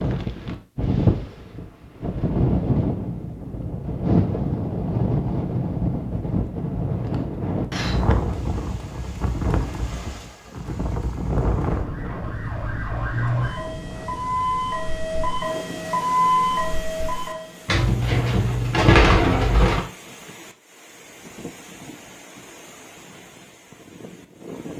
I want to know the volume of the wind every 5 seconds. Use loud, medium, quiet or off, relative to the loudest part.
loud, loud, medium, quiet, quiet.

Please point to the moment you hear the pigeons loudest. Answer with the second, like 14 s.
19 s.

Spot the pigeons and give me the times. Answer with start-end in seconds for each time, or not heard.
17.6-19.9.